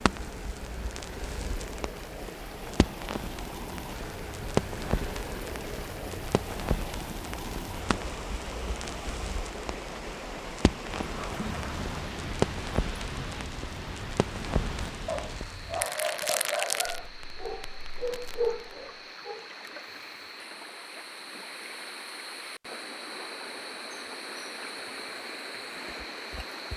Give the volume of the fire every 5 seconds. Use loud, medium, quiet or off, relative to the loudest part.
loud, medium, loud, loud, off, off.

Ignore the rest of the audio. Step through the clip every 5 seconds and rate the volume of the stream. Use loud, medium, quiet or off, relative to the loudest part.
loud, loud, loud, medium, loud, loud.